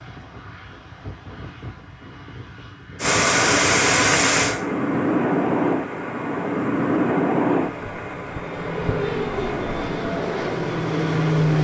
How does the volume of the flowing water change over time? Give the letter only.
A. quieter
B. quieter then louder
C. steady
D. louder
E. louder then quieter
A.